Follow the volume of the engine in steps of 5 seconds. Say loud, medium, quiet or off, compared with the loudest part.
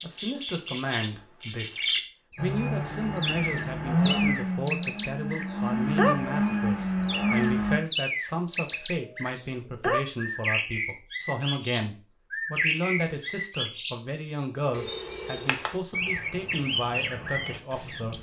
loud, loud, off, off.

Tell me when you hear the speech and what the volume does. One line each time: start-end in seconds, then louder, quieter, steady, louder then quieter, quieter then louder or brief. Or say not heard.
0.0-18.1 steady.